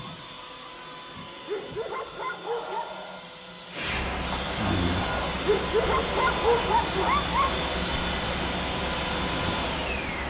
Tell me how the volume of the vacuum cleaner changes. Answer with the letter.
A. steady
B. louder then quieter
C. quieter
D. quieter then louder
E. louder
E.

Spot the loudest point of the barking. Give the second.
7 s.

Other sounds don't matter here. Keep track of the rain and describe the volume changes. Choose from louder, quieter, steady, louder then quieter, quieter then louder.
steady.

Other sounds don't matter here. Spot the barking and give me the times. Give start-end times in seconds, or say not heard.
1.4-3.0, 5.5-7.7.